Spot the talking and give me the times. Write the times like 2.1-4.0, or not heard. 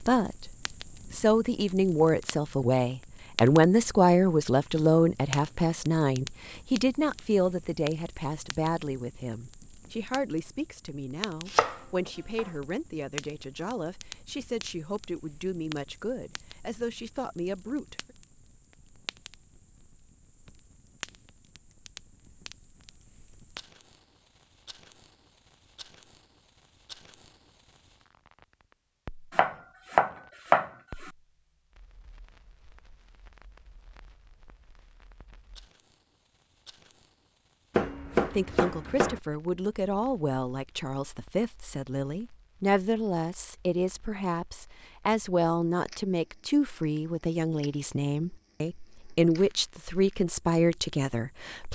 0.0-0.5, 1.1-18.1, 38.3-51.7.